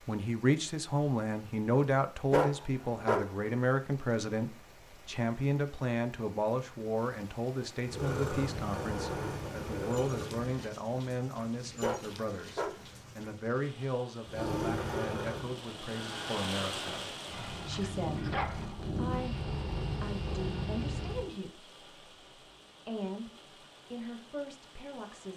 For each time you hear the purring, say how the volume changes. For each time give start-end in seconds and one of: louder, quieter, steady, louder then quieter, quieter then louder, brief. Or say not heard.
7.8-10.7 brief
14.2-21.3 quieter then louder.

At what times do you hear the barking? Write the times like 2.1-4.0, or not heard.
2.3-3.4, 11.8-12.8, 17.3-18.9.